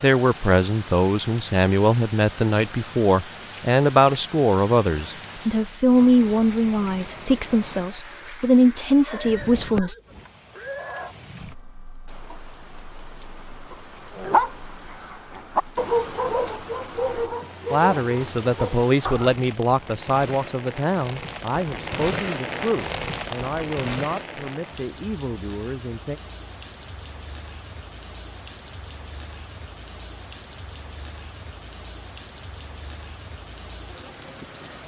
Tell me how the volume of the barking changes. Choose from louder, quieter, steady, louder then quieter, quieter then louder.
quieter.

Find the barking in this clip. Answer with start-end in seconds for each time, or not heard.
13.7-19.3.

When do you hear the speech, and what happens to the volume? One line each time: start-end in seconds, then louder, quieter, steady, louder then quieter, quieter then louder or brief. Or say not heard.
0.0-9.9 steady
17.7-26.2 quieter.